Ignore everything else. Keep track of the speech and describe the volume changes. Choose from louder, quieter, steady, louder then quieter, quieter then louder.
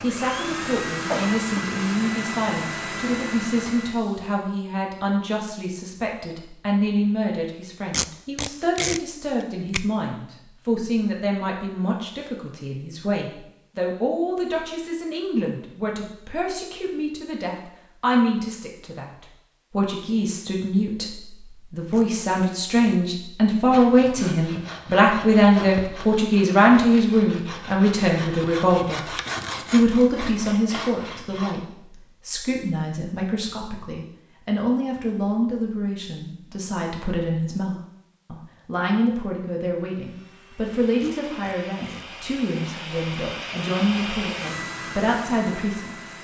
louder then quieter.